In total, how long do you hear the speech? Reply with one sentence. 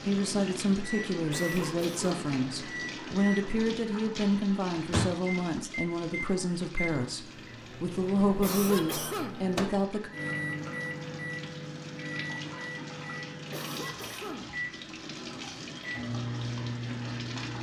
You can hear the speech for 10 seconds altogether.